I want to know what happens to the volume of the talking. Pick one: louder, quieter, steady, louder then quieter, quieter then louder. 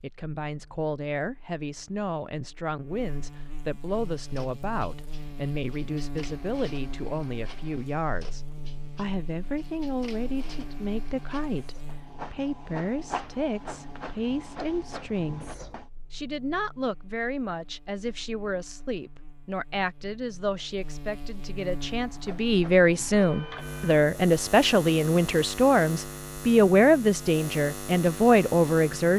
louder.